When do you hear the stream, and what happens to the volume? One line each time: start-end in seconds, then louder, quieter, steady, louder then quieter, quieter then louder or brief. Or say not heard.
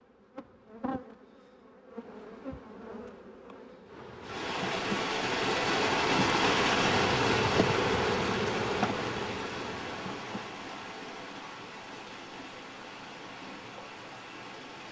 4.2-14.8 quieter.